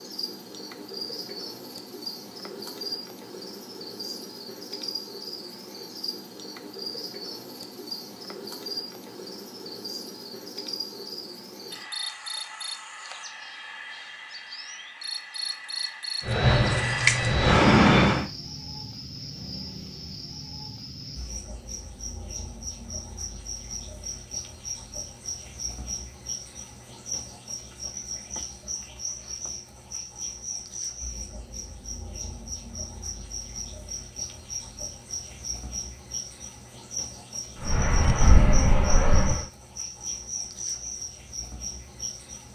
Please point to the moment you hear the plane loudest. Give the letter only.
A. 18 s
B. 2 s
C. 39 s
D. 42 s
A.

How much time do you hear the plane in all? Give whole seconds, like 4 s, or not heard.
4 s.